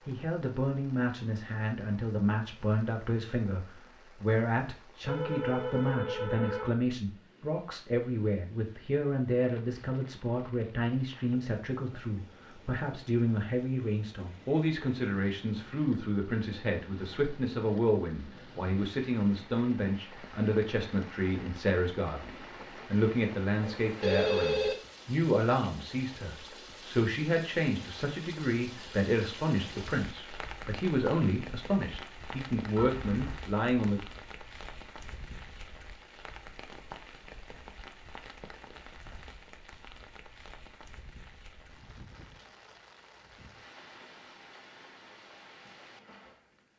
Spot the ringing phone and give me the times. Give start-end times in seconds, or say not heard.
5.0-6.8, 23.6-24.8, 32.8-33.4.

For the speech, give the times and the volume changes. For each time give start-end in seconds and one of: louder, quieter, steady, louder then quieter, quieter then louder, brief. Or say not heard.
0.1-34.0 steady.